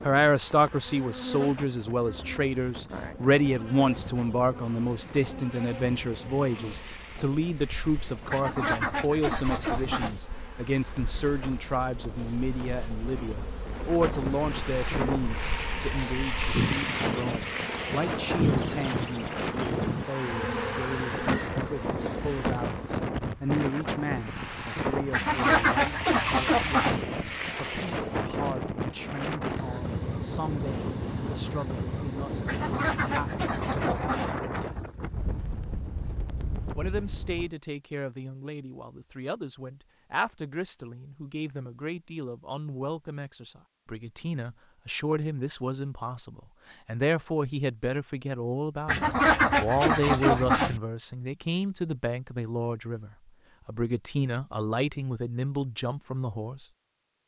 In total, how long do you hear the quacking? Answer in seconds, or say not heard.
8 s.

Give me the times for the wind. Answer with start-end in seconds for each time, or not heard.
0.0-37.5.